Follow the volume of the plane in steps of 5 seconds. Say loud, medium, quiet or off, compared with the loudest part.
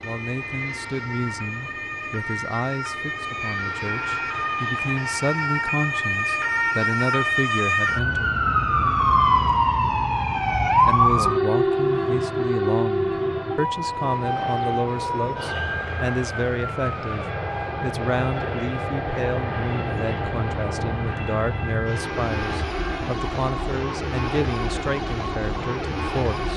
medium, quiet, medium, loud, loud, loud.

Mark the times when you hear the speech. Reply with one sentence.
The speech can be heard from 0.0 to 8.4 s and from 10.8 to 26.5 s.